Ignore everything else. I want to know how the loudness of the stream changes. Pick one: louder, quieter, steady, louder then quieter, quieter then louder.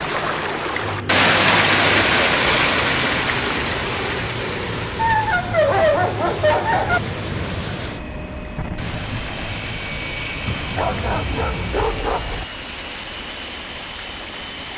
quieter.